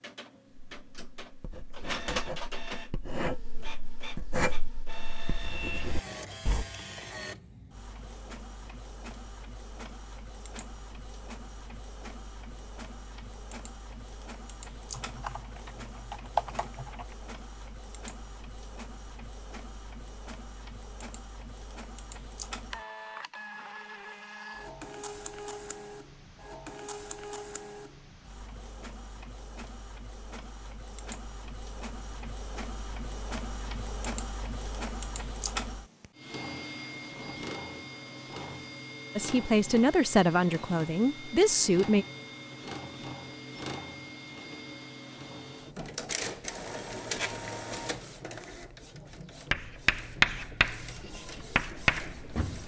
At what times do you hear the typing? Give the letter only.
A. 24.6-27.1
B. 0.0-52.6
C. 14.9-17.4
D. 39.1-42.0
C.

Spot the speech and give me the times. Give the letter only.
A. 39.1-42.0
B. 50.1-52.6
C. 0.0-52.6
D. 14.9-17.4
A.